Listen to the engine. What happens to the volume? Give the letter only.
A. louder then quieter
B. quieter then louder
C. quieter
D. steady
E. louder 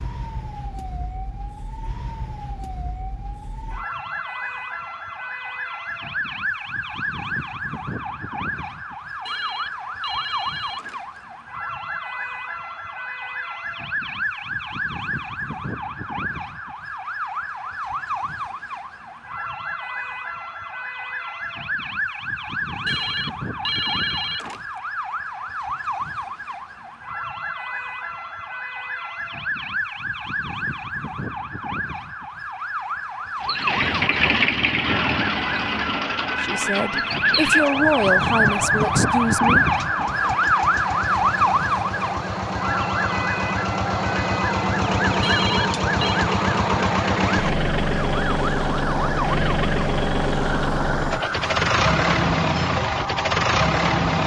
B.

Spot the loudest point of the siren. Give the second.
39 s.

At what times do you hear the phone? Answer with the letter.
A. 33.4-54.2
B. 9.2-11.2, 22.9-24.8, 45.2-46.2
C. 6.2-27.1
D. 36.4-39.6
B.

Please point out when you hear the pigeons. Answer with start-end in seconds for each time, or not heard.
not heard.